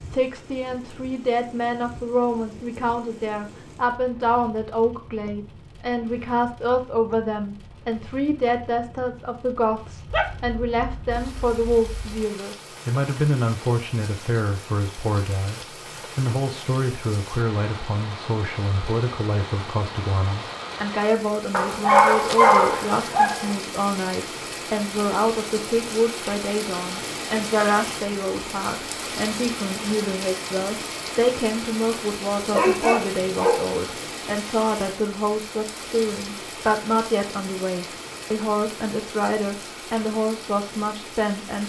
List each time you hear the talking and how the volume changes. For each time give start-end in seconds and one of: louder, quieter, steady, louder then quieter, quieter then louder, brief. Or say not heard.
0.0-41.6 steady.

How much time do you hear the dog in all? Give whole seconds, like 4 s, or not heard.
6 s.